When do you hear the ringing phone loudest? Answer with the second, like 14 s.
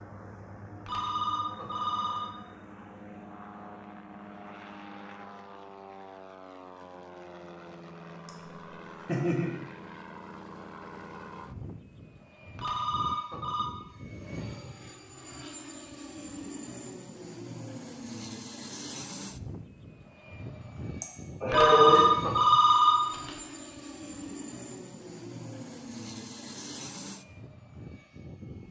22 s.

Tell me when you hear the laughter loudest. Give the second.
22 s.